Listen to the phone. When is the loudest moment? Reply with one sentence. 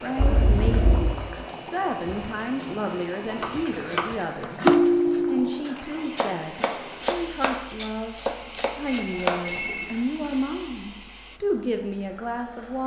The volume of the phone peaks at 5 seconds.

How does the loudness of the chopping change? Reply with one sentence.
The loudness of the chopping goes down, then up.